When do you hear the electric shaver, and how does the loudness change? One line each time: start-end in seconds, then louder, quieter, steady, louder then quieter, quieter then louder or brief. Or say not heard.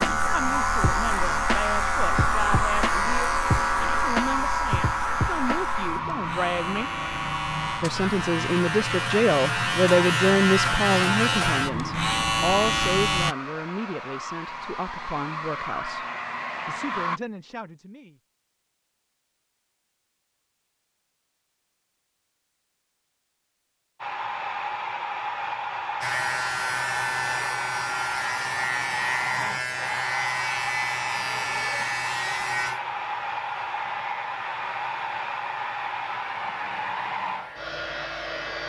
0.0-13.3 quieter then louder
26.0-38.6 quieter.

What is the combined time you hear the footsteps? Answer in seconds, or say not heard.
not heard.